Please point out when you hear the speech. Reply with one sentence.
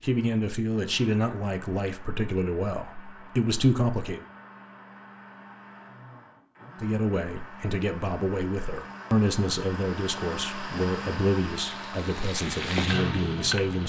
The speech can be heard from 0.0 to 4.2 s and from 6.8 to 13.8 s.